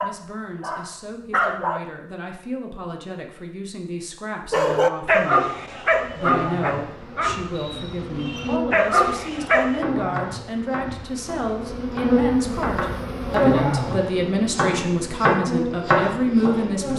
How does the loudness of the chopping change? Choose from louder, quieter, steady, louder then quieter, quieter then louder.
louder.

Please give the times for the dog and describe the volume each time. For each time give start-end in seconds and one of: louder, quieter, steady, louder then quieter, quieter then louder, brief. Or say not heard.
0.0-1.8 brief
4.5-9.8 quieter then louder.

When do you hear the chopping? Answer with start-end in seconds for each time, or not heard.
9.6-16.9.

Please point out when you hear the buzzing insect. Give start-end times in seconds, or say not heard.
5.8-16.9.